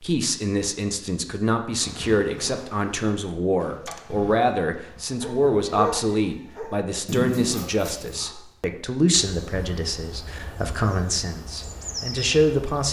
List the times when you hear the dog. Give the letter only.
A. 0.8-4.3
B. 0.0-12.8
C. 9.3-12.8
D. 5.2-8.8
D.